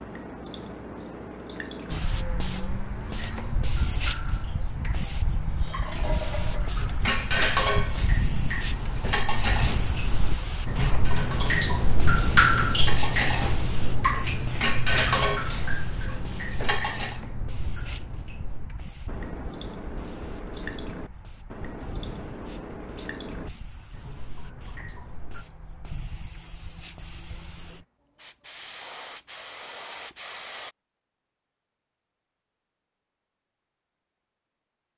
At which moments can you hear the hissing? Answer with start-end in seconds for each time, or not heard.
1.9-30.8.